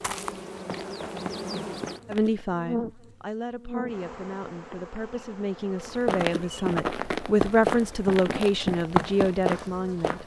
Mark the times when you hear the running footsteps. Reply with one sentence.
You can hear the running footsteps from 0.0 to 2.5 s and from 5.8 to 10.2 s.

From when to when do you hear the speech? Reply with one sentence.
The speech can be heard from 2.0 to 10.2 s.